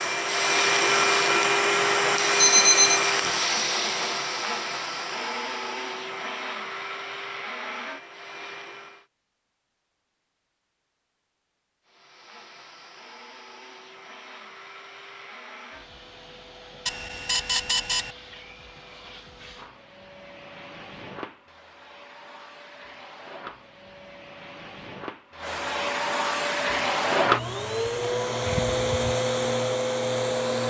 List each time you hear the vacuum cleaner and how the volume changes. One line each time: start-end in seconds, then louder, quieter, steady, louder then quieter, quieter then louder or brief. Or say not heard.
0.0-9.1 quieter
11.8-30.6 louder.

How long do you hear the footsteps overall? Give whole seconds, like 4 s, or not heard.
not heard.